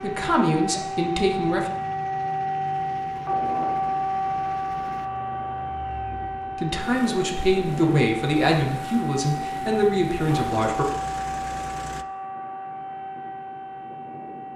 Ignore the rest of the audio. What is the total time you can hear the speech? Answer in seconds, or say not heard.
6 s.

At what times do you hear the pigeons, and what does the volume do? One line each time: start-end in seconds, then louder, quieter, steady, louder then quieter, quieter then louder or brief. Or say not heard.
not heard.